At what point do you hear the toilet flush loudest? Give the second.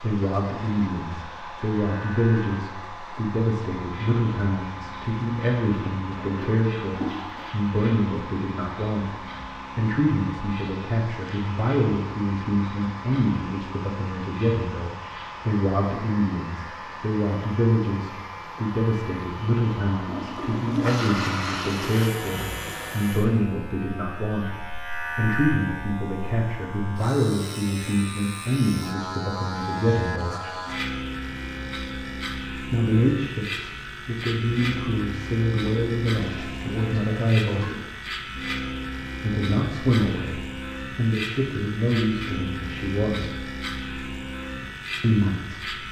21 s.